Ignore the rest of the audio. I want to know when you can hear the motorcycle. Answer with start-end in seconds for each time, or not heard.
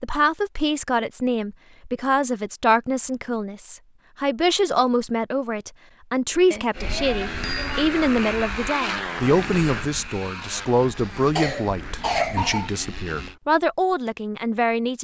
6.7-13.3.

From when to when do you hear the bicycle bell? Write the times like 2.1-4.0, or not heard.
6.5-7.9.